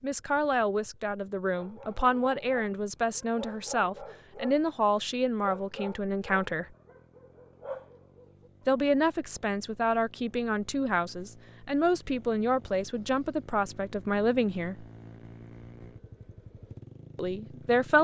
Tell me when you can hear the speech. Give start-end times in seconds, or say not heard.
0.0-6.7, 8.7-14.8, 17.1-17.9.